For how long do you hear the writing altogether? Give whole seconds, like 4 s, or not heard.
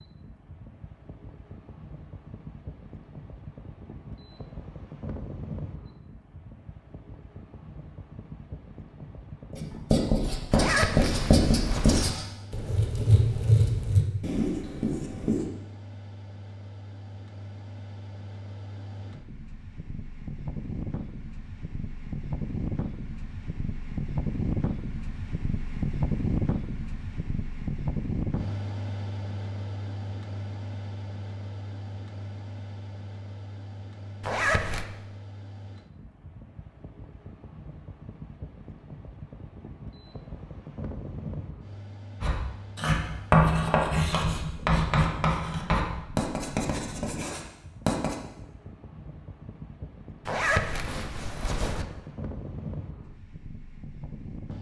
12 s.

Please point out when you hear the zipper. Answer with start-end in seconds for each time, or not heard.
10.5-12.1, 34.2-34.9, 50.2-51.9.